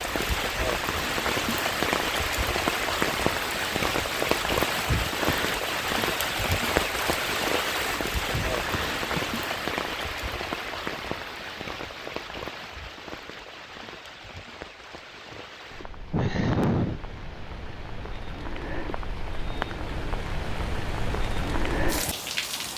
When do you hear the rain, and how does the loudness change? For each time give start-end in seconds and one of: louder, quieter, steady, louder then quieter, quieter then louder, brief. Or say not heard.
0.0-22.7 quieter then louder.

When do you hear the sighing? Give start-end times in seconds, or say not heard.
4.8-5.6, 8.3-9.2, 15.3-17.2.